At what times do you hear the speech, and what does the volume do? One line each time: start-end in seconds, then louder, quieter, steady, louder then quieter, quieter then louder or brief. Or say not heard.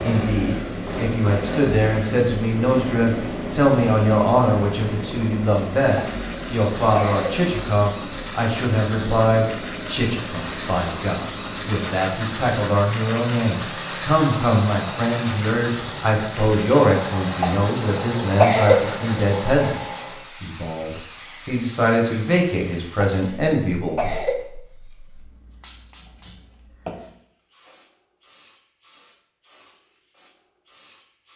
0.0-24.1 steady.